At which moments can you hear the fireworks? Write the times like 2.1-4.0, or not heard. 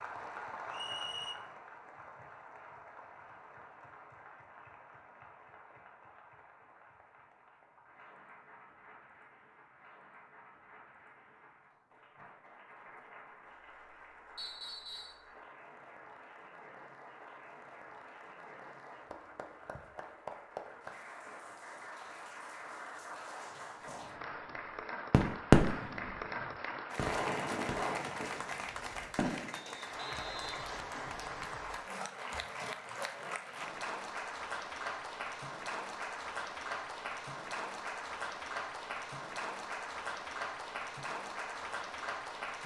25.1-29.6.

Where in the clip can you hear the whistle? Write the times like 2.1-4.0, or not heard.
0.7-1.4, 14.3-15.2, 29.5-31.6.